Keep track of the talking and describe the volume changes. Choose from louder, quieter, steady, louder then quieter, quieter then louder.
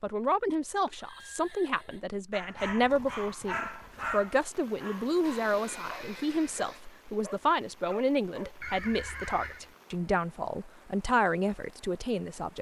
steady.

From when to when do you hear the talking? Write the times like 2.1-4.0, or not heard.
0.0-12.5.